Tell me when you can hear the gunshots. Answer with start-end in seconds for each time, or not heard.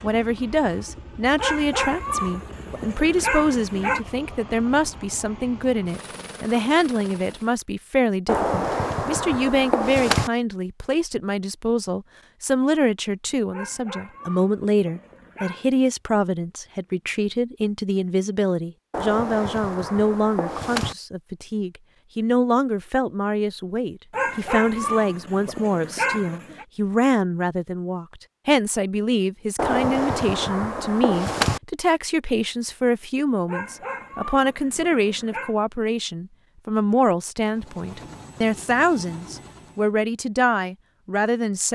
8.2-10.3, 18.9-20.9, 29.6-31.6.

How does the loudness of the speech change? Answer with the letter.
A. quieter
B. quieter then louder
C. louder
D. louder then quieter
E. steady
E.